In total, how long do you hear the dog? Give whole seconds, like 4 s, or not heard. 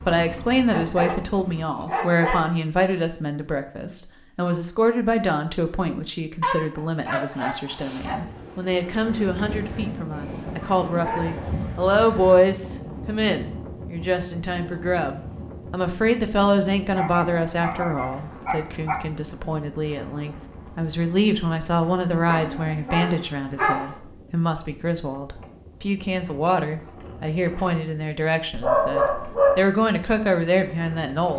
10 s.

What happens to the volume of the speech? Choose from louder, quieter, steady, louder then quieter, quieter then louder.
steady.